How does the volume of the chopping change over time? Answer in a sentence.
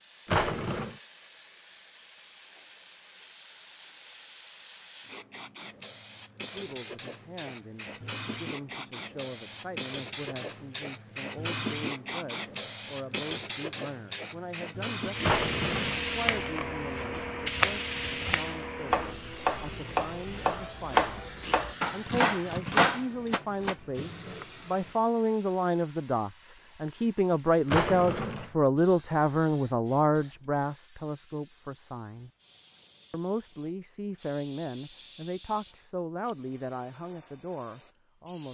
The loudness of the chopping goes up.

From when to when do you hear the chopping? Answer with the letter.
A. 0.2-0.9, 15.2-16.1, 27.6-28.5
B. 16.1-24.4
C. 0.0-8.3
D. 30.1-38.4
B.